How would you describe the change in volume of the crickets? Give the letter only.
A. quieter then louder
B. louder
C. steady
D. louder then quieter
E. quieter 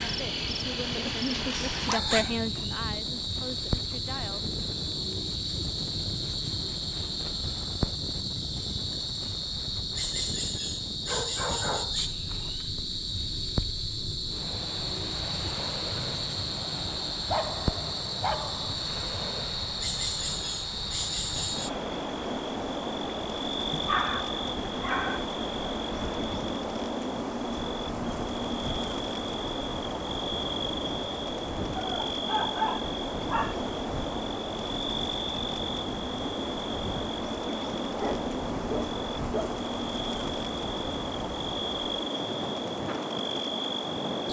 C.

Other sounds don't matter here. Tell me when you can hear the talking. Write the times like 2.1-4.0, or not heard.
0.0-4.5.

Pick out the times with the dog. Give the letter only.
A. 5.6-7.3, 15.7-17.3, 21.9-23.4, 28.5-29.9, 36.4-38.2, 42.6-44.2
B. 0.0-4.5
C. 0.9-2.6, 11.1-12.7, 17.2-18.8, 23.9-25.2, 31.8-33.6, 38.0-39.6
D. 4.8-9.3
C.